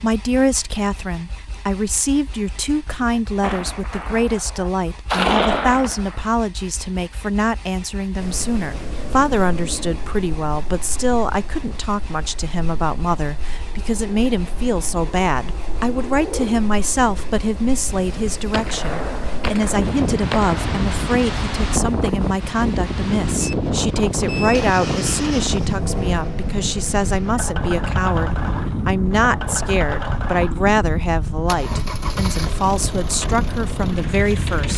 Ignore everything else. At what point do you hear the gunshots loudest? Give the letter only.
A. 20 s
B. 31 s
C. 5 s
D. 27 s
C.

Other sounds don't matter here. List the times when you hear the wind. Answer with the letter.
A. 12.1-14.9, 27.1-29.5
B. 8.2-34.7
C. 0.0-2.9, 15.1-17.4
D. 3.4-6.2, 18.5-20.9
B.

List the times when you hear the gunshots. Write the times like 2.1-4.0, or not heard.
3.4-6.2, 18.5-20.9.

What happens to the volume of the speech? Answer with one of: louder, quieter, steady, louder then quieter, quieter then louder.
steady.